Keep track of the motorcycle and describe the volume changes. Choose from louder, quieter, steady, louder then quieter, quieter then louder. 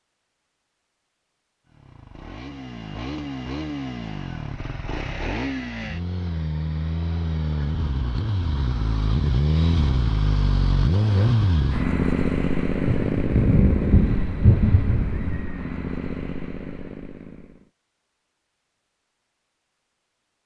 louder then quieter.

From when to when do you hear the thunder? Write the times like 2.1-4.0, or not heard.
12.8-15.4.